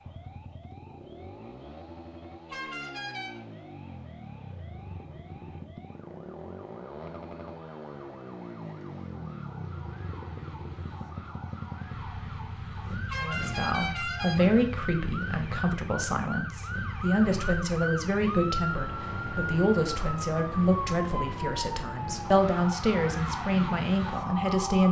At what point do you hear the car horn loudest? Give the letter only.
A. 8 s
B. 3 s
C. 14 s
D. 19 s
C.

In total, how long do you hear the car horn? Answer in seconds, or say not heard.
2 s.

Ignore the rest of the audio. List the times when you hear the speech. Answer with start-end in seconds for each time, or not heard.
13.2-24.8.